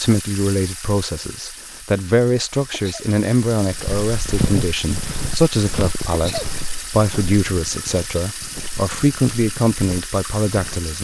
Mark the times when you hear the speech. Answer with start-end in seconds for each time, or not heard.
0.0-10.9.